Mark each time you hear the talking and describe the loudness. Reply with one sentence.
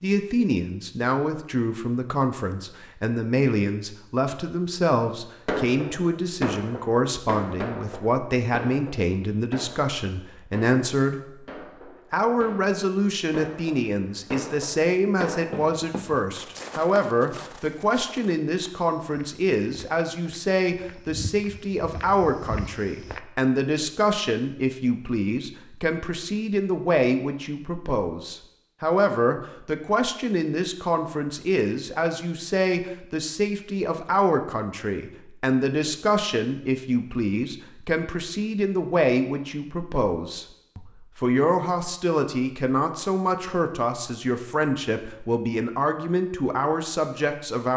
The talking can be heard from 0.0 to 11.3 s, at a steady volume; and from 12.1 to 47.7 s, at a steady volume.